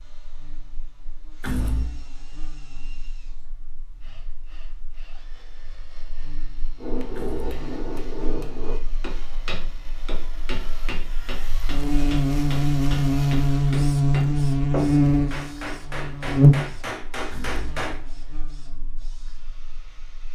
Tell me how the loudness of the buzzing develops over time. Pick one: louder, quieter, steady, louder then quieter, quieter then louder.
louder.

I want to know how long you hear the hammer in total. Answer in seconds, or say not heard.
11 s.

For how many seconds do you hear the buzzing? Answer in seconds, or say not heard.
20 s.